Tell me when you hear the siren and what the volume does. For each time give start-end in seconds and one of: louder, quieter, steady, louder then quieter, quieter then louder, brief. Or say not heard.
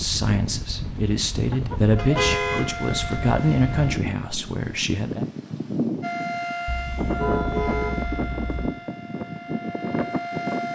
1.9-4.0 brief
6.0-10.7 quieter then louder.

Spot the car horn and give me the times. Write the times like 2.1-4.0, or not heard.
1.9-2.7, 6.7-8.7.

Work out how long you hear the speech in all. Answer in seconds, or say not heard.
5 s.